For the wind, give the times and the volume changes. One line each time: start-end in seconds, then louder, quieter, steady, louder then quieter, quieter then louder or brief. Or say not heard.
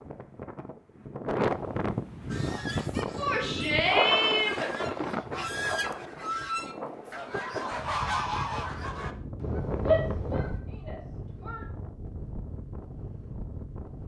0.0-14.0 quieter.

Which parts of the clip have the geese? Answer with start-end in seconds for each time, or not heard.
2.3-10.6.